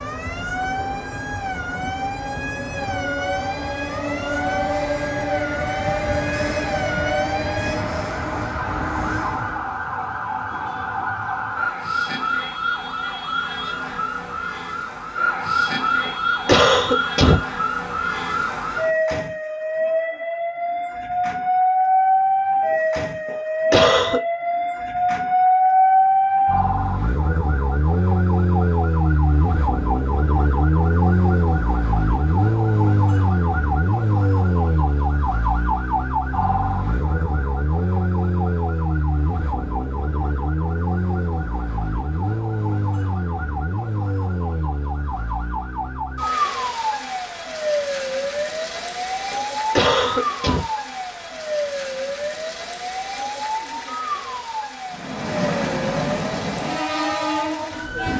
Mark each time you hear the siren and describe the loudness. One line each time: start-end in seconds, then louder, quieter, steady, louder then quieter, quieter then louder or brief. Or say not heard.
0.0-58.1 louder then quieter.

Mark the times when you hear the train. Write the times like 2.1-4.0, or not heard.
0.0-9.8, 54.9-58.1.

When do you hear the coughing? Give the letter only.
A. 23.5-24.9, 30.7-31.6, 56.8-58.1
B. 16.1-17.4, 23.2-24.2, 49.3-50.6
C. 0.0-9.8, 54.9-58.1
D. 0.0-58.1
B.